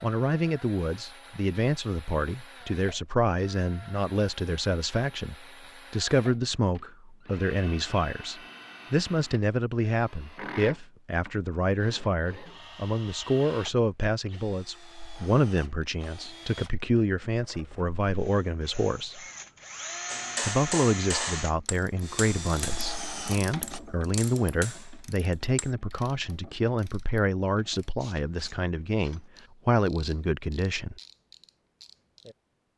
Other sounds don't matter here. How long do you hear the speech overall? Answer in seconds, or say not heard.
30 s.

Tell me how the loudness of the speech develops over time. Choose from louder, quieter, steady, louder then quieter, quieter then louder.
steady.